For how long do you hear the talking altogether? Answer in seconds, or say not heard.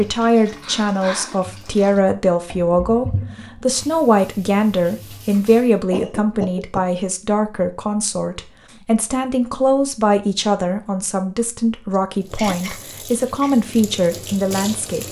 15 s.